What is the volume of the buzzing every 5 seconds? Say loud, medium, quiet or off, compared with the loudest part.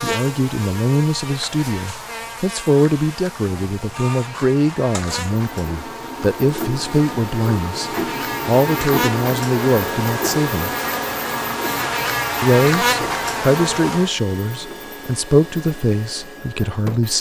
medium, medium, loud, off.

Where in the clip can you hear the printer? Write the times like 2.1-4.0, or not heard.
3.3-17.1.